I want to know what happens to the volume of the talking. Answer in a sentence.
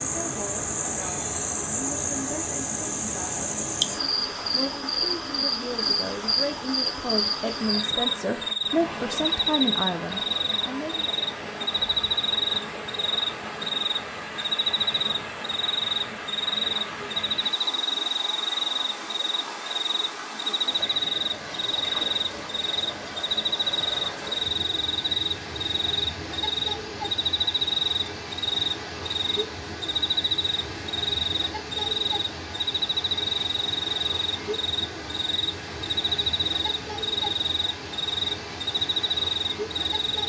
The loudness of the talking goes up.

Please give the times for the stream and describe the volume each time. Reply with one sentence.
The stream can be heard from 0.0 to 40.2 s, at a steady volume.